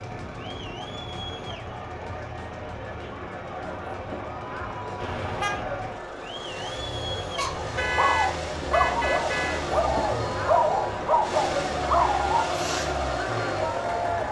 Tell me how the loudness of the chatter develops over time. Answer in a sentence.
The volume of the chatter goes up.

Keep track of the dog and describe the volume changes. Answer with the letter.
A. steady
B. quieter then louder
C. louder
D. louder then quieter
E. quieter
A.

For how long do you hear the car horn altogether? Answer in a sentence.
The car horn can be heard for 3 seconds in total.